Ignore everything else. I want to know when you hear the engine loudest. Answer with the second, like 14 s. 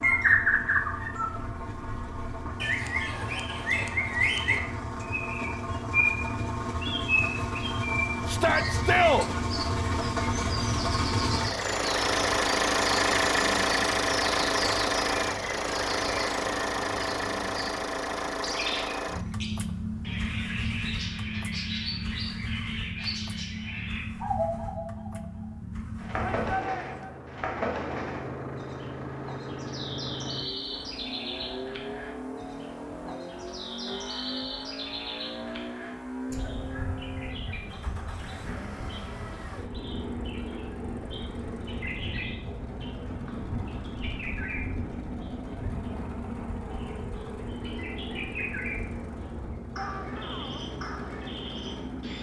13 s.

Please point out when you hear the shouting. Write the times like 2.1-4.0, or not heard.
8.2-9.3, 26.1-27.2, 49.8-50.6.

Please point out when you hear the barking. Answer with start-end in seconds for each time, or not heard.
not heard.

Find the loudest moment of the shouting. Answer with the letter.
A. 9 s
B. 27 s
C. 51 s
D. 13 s
A.